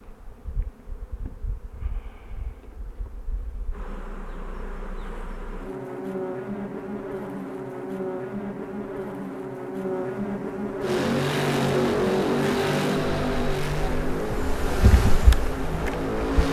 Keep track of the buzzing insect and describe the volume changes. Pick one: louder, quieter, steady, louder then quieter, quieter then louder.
louder.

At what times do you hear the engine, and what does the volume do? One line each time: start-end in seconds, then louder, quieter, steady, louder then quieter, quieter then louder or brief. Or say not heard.
10.8-16.4 quieter.